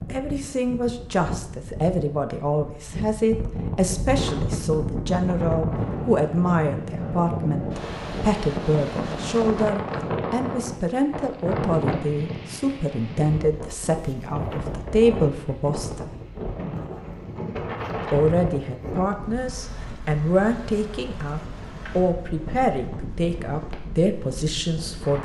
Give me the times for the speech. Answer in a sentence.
The speech can be heard from 0.1 to 16.1 s and from 18.1 to 25.2 s.